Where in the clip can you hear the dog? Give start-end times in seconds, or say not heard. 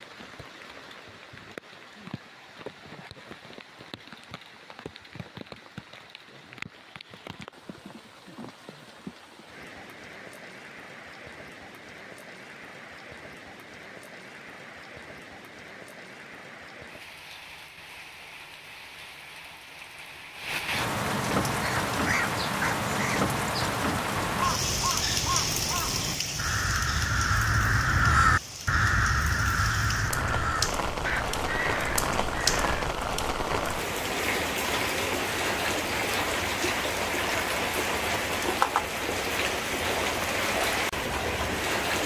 not heard.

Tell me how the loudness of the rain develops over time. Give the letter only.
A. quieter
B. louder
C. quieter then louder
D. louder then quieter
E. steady
B.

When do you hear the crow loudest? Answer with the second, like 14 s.
28 s.